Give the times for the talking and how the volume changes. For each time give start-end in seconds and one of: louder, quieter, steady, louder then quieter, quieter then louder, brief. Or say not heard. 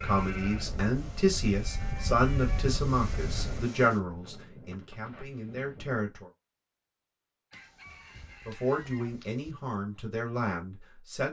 0.0-6.3 quieter
8.4-11.2 brief.